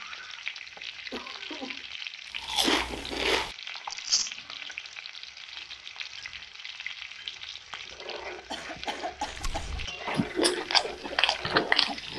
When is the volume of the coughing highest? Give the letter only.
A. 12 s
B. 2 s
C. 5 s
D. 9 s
D.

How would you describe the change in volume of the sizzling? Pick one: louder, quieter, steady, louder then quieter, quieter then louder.
steady.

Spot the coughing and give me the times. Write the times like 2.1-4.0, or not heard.
0.7-1.9, 8.5-9.8.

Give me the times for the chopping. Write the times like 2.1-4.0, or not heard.
not heard.